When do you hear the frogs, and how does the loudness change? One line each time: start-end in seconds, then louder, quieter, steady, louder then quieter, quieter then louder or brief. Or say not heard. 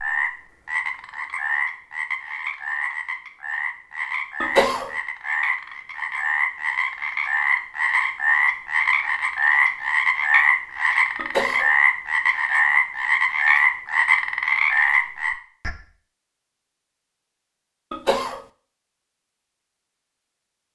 0.0-15.7 louder.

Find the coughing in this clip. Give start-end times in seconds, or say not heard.
4.4-4.9, 11.2-11.7, 17.9-18.4.